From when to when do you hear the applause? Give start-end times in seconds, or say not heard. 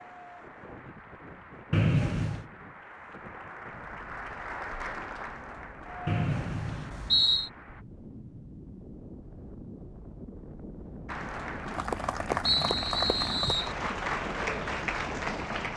0.0-7.8, 11.1-15.7.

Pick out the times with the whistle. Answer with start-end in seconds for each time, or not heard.
1.7-2.5, 6.0-7.5, 12.4-13.8.